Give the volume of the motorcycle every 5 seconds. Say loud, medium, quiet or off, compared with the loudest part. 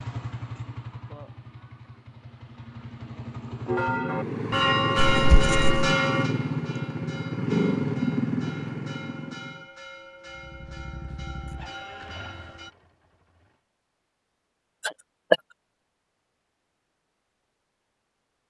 medium, loud, quiet, off.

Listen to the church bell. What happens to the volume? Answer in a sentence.
The volume of the church bell goes down.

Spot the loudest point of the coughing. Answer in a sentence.
The volume of the coughing peaks at 15 seconds.